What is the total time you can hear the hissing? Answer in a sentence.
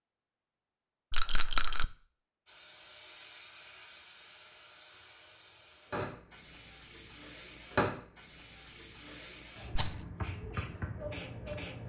The hissing can be heard for 9 seconds in total.